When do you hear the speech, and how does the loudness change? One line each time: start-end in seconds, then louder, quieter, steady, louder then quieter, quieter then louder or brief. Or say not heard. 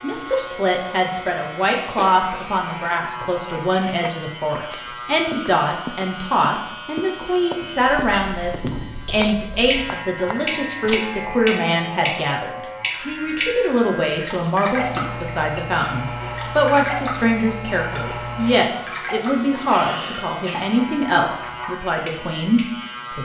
0.0-23.1 steady.